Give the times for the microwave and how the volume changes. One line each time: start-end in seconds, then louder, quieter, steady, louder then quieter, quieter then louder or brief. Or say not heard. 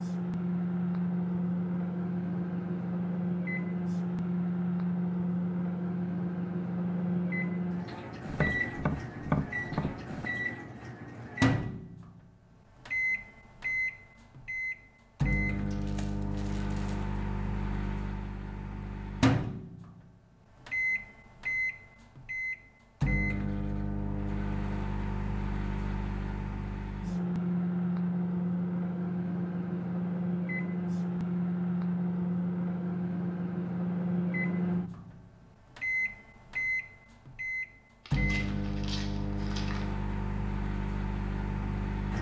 0.0-42.1 steady.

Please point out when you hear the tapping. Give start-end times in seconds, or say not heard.
8.2-10.2.